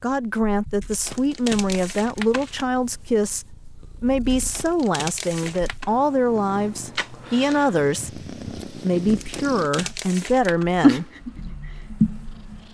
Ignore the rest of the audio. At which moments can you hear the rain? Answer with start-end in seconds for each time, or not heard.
not heard.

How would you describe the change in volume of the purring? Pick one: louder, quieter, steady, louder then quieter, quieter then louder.
louder.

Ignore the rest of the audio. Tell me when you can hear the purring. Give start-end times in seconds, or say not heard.
0.0-12.7.